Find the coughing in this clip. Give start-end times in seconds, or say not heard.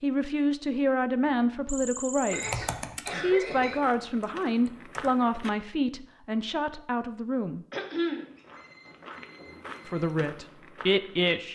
2.3-3.8, 7.7-8.2.